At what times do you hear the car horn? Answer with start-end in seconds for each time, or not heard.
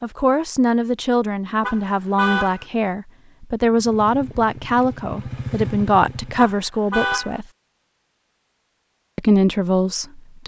1.6-2.6, 6.3-7.4.